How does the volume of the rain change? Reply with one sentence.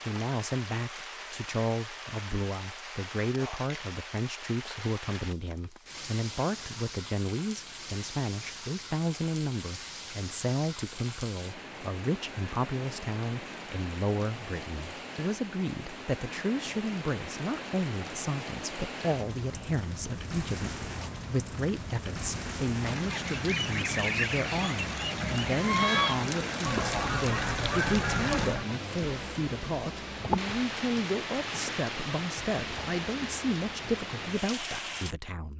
The loudness of the rain goes up.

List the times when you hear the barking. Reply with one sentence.
You can't hear the barking here.